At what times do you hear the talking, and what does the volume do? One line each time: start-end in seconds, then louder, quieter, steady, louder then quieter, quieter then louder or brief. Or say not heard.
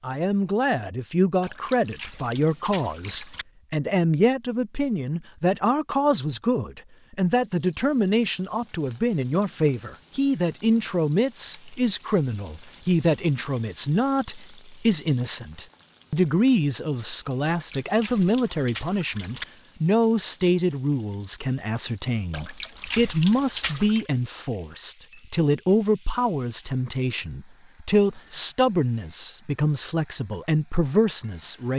0.0-31.7 steady.